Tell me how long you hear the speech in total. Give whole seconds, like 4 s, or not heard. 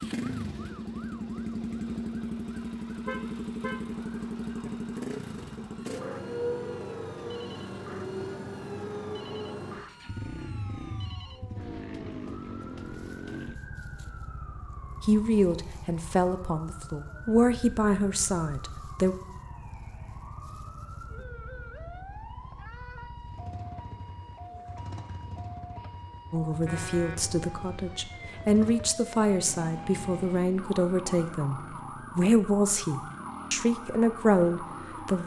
13 s.